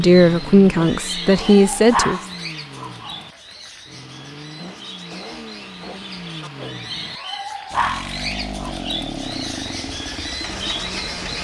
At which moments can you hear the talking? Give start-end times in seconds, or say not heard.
0.0-2.2.